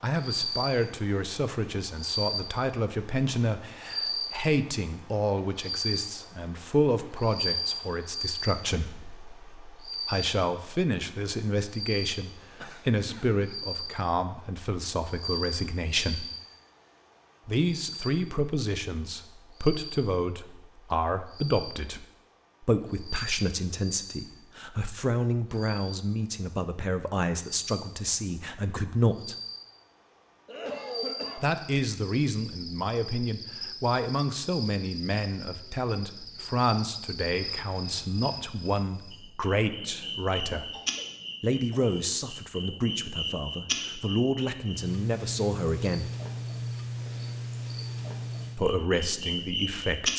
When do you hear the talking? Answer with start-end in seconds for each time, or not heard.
0.0-16.2, 17.4-29.4, 31.4-40.7, 41.4-46.1, 48.5-50.1.